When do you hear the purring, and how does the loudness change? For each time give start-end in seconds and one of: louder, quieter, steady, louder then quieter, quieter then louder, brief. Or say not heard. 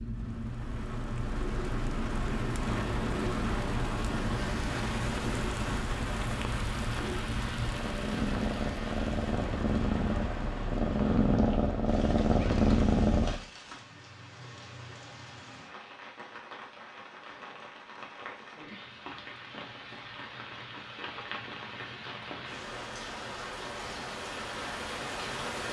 0.0-13.4 louder.